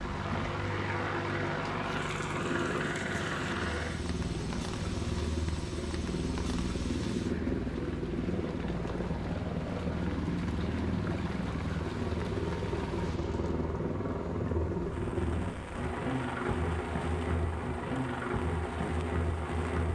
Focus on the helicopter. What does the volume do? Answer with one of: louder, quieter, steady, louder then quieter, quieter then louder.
steady.